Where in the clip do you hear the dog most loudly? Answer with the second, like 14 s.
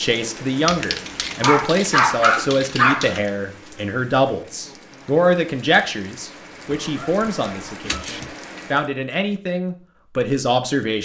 2 s.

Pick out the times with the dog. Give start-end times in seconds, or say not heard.
0.7-3.2, 6.7-8.3.